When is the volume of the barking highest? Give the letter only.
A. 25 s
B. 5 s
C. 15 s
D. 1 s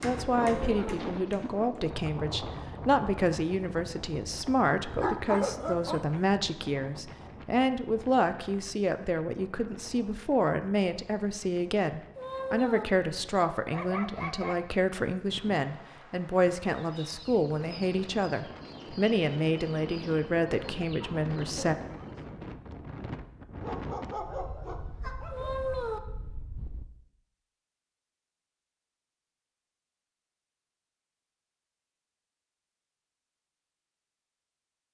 B.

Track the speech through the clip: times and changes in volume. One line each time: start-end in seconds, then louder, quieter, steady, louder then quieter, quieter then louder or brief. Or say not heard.
0.0-21.8 steady.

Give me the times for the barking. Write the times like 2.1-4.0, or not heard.
4.9-6.2, 13.7-14.9, 23.6-25.6.